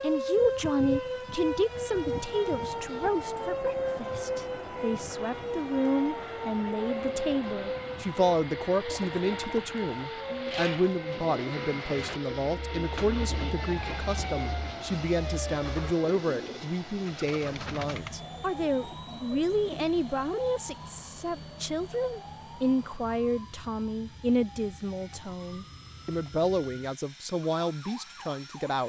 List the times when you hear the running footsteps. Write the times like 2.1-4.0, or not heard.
not heard.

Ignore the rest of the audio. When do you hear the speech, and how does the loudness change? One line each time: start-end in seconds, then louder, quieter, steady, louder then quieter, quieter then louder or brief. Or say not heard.
0.0-28.8 steady.